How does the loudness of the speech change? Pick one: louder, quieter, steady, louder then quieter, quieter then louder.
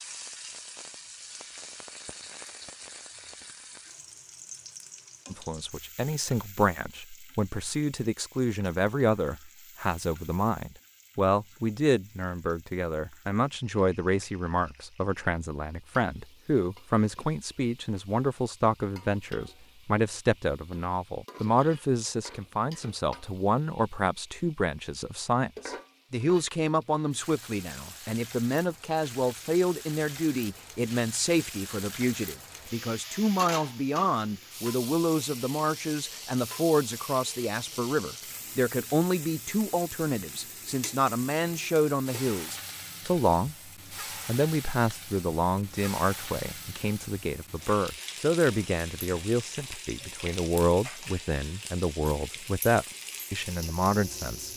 steady.